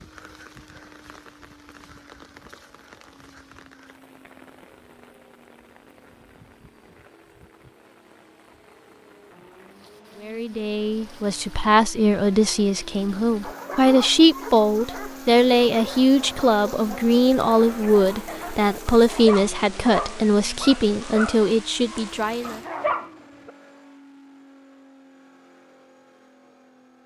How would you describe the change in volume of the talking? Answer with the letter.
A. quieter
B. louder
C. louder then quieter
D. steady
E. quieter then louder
D.